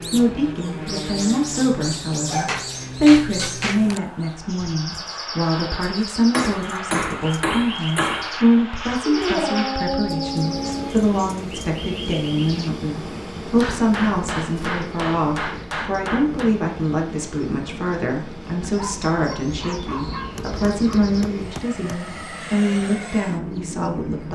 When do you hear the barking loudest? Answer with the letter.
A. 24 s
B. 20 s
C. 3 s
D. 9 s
D.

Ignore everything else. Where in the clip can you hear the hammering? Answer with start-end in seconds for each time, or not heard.
2.5-3.9, 6.3-8.4, 13.6-16.6, 20.3-22.1.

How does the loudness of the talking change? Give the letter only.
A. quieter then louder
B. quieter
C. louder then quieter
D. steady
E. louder
D.